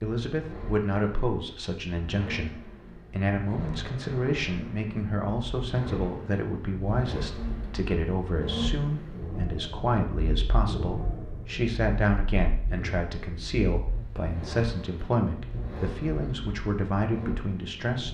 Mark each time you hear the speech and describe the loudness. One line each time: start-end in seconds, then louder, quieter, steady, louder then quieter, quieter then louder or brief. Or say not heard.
0.0-18.0 steady.